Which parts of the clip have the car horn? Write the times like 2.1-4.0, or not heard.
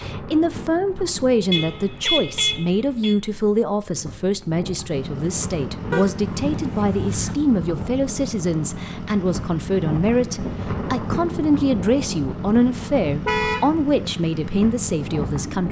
1.5-3.1, 5.9-7.3, 13.2-13.7.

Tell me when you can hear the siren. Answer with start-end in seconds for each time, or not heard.
not heard.